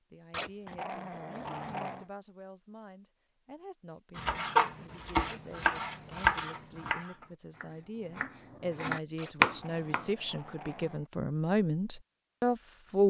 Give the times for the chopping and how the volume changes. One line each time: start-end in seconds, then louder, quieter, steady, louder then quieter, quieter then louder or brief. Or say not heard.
4.2-10.1 quieter then louder.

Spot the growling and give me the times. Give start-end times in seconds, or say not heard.
0.3-2.0, 5.2-6.2, 9.2-11.1.